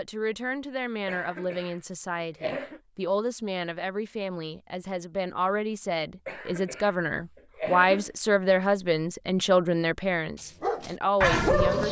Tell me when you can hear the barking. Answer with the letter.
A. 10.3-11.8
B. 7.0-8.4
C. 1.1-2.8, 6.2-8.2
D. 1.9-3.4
A.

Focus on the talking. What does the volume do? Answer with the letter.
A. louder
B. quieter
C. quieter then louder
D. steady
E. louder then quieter
A.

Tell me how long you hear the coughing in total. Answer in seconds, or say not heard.
4 s.